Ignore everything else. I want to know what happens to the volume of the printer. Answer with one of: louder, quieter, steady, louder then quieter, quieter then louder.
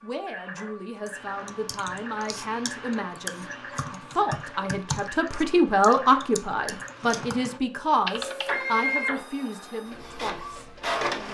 louder.